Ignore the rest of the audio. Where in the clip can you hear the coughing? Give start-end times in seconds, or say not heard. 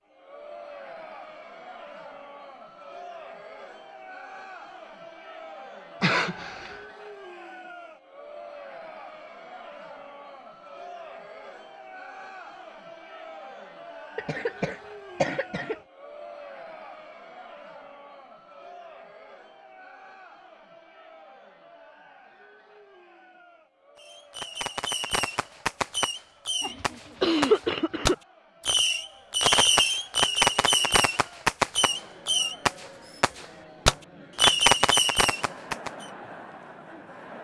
6.0-6.8, 14.2-15.8, 26.6-28.1.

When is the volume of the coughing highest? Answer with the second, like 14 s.
27 s.